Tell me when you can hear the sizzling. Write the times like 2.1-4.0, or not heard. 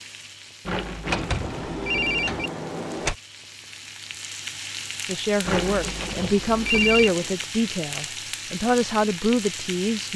0.0-10.1.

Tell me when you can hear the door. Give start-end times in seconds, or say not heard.
1.1-3.1, 5.9-7.5.